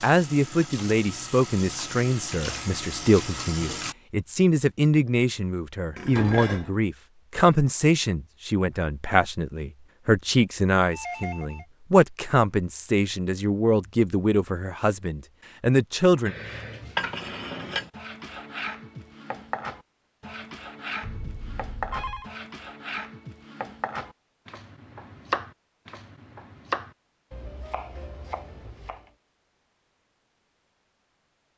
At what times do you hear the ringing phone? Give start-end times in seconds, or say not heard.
10.9-11.7, 21.0-22.3.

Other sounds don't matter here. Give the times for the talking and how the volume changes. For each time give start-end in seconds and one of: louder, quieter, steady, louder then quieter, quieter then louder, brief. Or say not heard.
0.0-16.4 steady.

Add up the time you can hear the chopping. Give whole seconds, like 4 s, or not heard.
12 s.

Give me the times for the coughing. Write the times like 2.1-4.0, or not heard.
not heard.